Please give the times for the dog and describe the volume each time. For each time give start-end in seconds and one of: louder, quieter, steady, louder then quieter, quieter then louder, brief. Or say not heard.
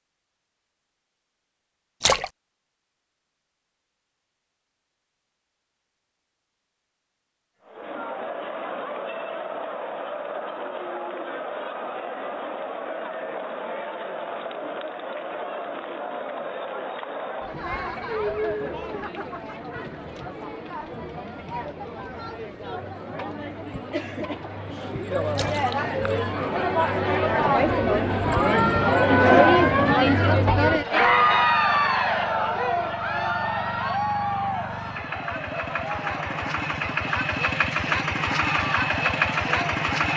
not heard.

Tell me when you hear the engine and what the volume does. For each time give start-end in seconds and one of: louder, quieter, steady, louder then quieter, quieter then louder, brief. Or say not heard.
30.9-40.1 louder.